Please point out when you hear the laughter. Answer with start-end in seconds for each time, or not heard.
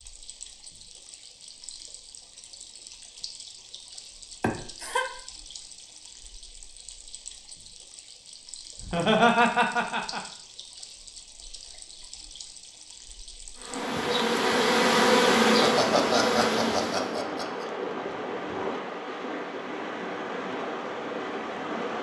4.4-5.0, 8.8-10.2, 15.4-17.6.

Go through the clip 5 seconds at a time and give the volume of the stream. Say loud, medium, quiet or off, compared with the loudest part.
quiet, quiet, medium, loud, loud.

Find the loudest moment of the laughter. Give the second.
9 s.